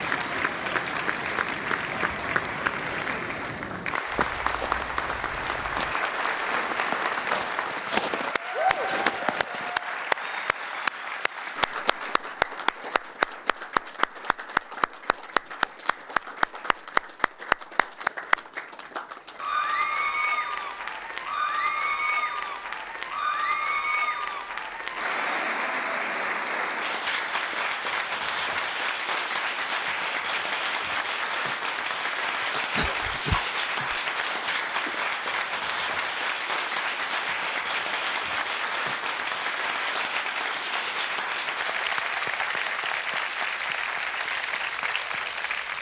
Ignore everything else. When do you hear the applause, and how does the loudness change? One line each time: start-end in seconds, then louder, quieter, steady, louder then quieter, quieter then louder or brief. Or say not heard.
0.0-45.7 steady.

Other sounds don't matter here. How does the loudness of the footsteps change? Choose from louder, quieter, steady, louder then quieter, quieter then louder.
louder.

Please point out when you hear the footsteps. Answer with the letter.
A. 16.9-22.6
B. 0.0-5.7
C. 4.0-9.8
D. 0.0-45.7
C.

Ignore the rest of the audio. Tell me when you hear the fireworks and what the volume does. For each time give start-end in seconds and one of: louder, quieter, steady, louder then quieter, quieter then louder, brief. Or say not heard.
not heard.